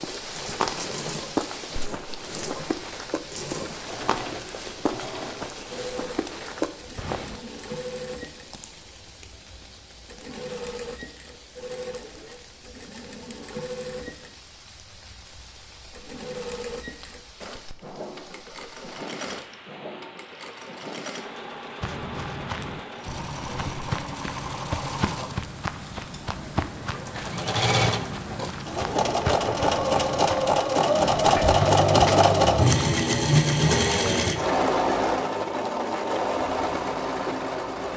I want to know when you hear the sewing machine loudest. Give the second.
32 s.